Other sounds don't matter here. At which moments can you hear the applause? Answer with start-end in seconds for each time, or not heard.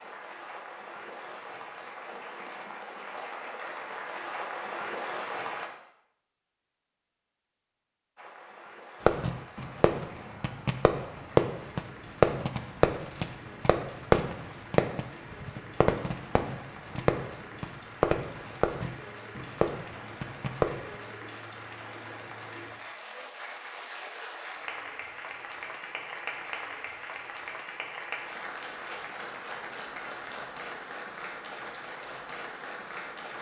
0.0-5.7, 8.2-33.3.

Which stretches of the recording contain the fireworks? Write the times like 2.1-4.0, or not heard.
9.1-20.9.